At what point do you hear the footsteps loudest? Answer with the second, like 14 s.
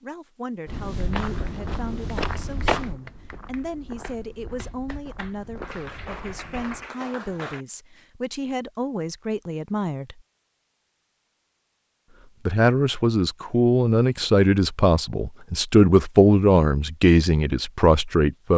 3 s.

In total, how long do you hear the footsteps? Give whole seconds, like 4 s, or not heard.
6 s.